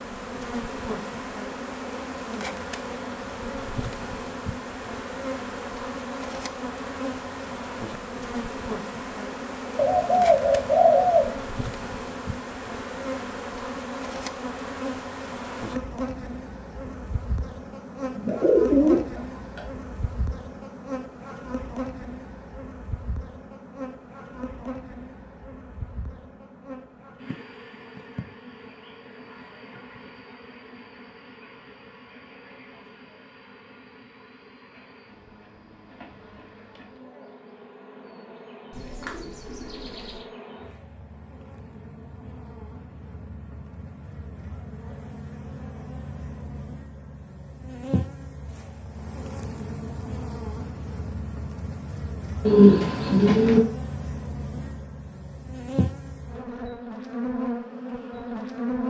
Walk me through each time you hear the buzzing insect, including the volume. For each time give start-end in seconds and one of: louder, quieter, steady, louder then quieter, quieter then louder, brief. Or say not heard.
0.0-58.8 quieter then louder.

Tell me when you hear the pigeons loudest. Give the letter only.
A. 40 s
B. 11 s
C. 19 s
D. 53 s
D.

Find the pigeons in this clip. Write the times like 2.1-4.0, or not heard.
9.8-11.3, 18.2-19.0, 38.7-40.2, 52.5-53.6.